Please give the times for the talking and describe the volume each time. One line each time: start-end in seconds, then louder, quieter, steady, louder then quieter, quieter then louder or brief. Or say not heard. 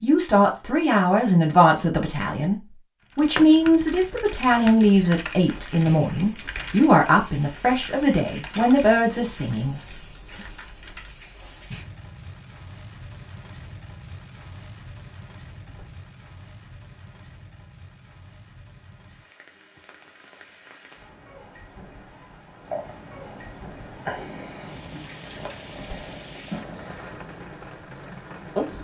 0.0-9.8 steady.